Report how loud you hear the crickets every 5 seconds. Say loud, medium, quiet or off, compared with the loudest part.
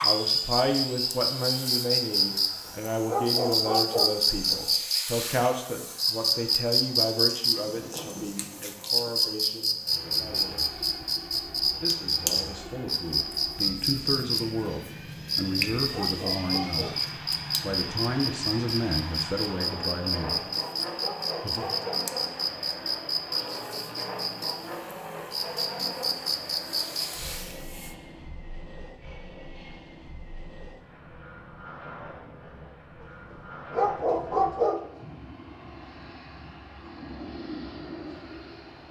loud, loud, loud, loud, medium, medium, off, off.